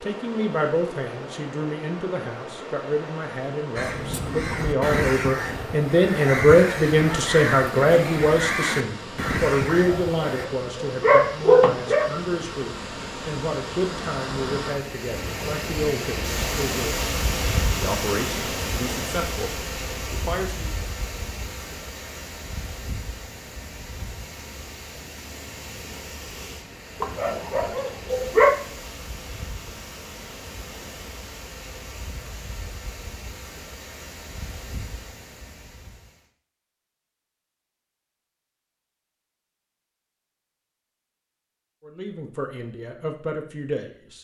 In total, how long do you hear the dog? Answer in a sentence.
The dog can be heard for 4 seconds in total.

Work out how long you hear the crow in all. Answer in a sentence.
You can hear the crow for 7 seconds altogether.